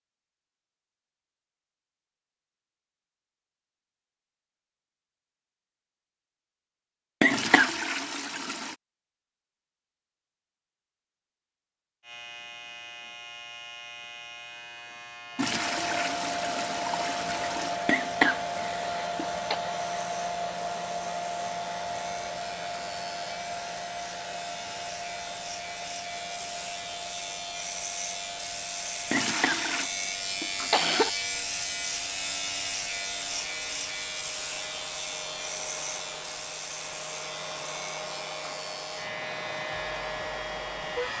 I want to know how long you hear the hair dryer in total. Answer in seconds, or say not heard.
26 s.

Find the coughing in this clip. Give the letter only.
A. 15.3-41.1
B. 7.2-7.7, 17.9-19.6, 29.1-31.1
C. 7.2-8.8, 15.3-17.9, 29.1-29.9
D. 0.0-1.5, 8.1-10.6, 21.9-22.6
B.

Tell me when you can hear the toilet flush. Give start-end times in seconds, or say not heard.
7.2-8.8, 15.3-17.9, 29.1-29.9.